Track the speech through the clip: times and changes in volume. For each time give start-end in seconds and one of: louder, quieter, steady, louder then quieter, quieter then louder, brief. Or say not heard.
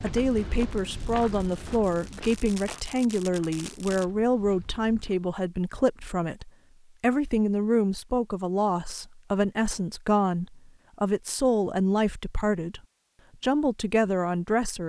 0.0-12.8 steady
13.4-14.8 brief.